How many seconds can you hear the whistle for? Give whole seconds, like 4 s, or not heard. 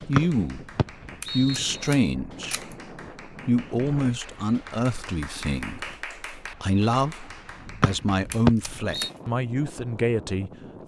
3 s.